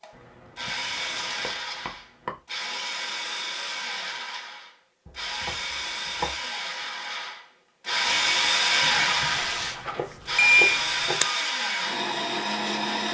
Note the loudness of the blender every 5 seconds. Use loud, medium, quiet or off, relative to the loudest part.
medium, loud, loud.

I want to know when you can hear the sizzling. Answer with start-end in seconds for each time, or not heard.
8.0-9.8.